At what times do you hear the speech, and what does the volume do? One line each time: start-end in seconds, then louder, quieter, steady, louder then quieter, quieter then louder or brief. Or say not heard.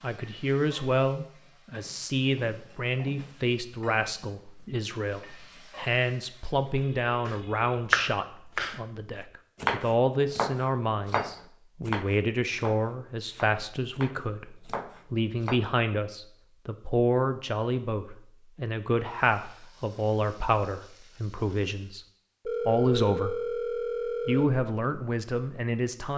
0.0-26.1 steady.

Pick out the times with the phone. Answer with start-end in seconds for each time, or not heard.
6.7-7.7, 22.4-24.4.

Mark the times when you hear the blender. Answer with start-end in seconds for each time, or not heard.
not heard.